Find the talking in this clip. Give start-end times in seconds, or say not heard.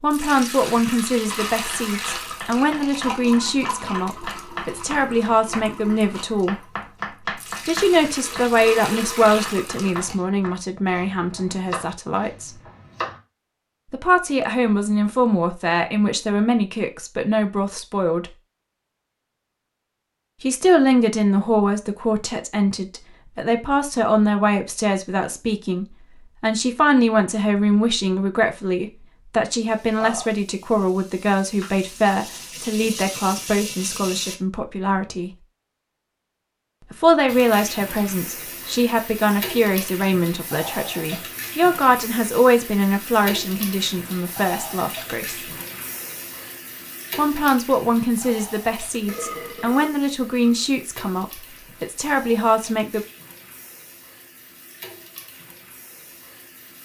0.0-6.6, 7.7-12.6, 13.9-18.4, 20.4-35.4, 36.9-45.5, 47.1-53.0.